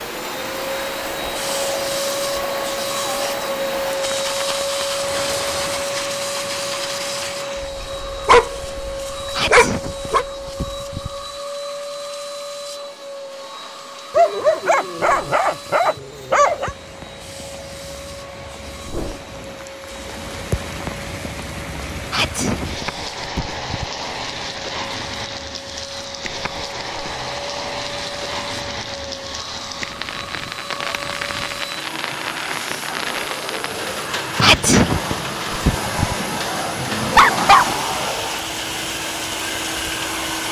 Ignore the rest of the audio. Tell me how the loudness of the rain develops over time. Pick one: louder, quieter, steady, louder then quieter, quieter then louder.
quieter then louder.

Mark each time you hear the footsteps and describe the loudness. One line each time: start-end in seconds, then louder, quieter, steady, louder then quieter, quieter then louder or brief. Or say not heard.
not heard.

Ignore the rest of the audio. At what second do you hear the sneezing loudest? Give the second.
35 s.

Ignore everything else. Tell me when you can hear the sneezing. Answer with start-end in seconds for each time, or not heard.
9.3-11.1, 22.1-24.1, 34.4-36.1.